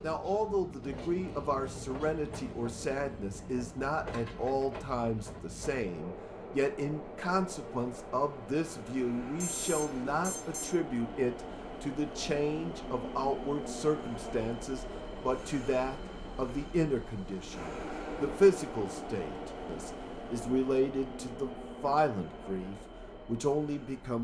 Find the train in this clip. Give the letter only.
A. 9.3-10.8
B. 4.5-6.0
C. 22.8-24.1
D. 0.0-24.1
D.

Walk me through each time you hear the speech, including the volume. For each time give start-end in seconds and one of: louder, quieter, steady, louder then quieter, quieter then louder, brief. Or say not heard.
0.0-24.1 steady.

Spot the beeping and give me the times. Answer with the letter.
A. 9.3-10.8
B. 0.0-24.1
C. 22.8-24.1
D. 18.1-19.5
A.